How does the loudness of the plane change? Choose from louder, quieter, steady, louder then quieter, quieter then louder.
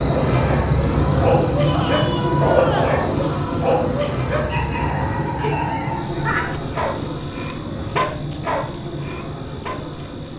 quieter.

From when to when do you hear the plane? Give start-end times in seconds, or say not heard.
0.0-10.3.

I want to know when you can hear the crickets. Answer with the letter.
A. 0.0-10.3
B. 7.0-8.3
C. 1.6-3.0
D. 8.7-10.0
A.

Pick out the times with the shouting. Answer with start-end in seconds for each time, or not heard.
1.6-3.0.